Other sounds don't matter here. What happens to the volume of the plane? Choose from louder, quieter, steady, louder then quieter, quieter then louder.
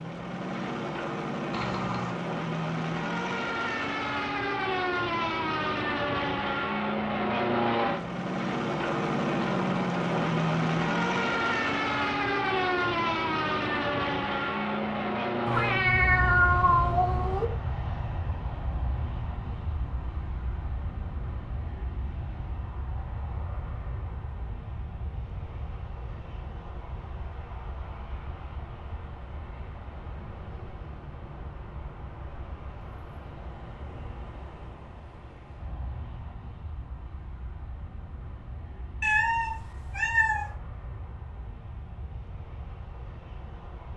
quieter.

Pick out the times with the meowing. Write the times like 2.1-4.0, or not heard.
1.5-2.1, 15.4-17.4, 39.0-40.5.